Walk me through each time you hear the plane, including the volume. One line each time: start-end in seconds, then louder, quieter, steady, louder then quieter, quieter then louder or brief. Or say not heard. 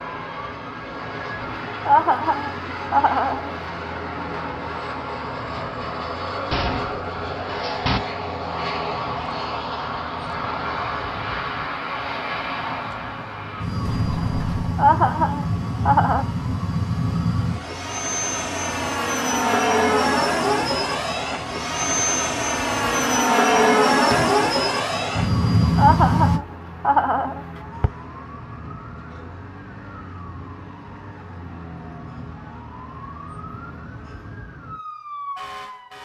0.0-26.4 louder.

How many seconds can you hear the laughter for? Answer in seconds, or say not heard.
5 s.